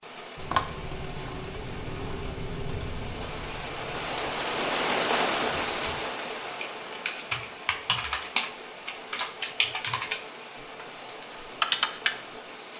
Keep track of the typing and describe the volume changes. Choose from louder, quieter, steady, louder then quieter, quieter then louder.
quieter then louder.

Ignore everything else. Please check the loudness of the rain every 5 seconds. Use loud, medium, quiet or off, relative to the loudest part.
loud, loud, medium.